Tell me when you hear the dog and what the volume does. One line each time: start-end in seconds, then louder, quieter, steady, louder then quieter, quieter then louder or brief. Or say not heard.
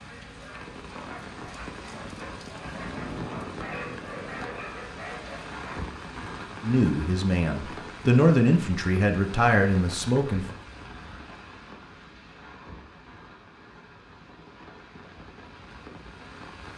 0.0-5.8 louder.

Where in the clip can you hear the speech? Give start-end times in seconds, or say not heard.
6.6-10.4.